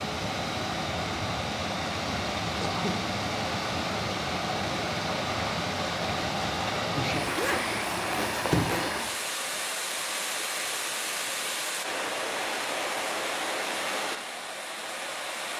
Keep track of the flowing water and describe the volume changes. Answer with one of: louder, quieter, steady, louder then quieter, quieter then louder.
steady.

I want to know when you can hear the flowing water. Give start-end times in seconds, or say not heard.
0.0-15.5.